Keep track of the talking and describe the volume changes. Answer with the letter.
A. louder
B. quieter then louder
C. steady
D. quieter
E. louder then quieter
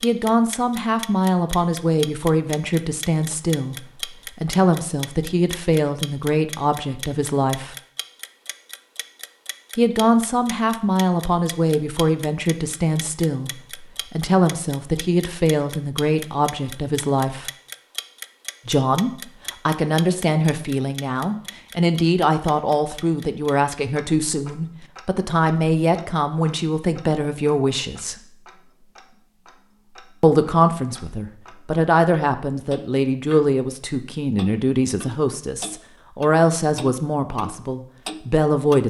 C.